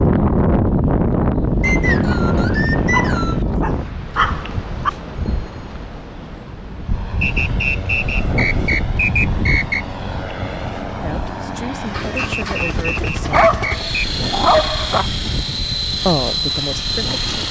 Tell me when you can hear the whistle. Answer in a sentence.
You can hear the whistle from 1.6 to 3.5 s, from 7.2 to 9.8 s and from 12.2 to 13.9 s.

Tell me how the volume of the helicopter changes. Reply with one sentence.
The loudness of the helicopter goes up.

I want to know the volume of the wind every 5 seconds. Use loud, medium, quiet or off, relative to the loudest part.
loud, medium, quiet, quiet.